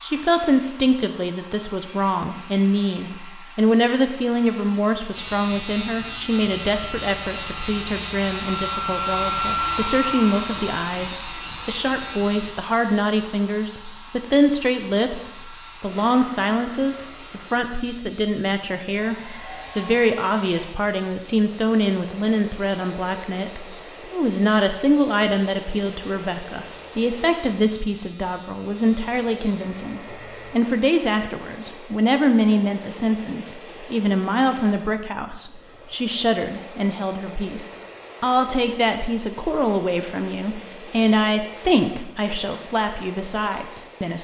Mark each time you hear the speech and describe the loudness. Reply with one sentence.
You can hear the speech from 0.0 to 44.2 s, at a steady volume.